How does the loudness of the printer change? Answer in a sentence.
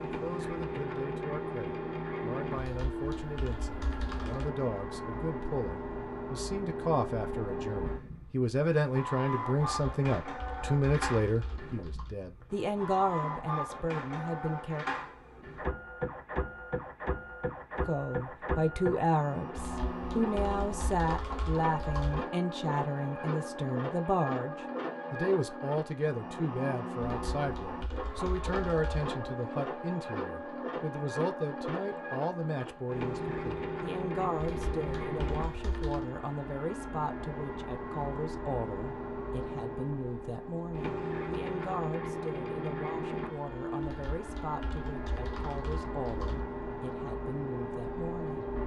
The loudness of the printer stays about the same.